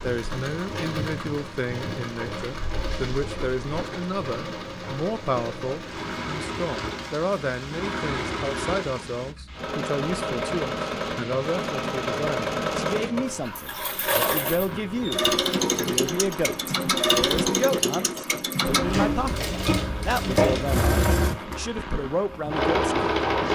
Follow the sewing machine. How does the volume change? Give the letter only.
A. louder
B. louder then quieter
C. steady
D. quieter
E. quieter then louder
A.